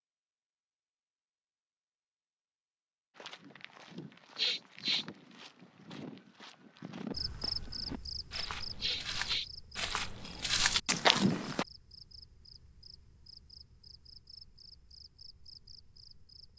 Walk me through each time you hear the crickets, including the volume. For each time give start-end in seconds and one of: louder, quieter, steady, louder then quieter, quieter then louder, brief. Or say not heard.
7.1-16.5 quieter.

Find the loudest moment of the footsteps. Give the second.
11 s.